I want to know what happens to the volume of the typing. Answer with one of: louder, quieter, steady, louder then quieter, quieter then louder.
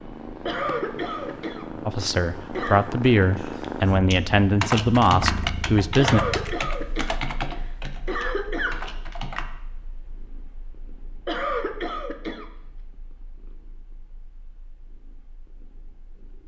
quieter.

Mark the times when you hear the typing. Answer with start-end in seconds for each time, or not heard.
4.1-9.4.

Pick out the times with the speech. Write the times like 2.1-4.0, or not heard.
1.9-6.2.